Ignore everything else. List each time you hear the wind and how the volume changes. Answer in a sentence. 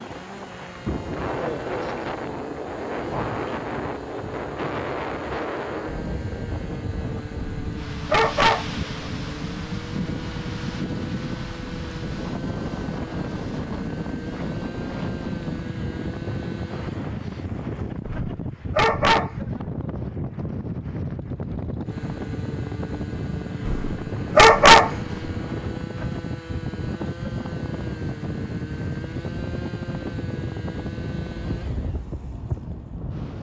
The wind can be heard from 0.0 to 33.3 s, at a steady volume.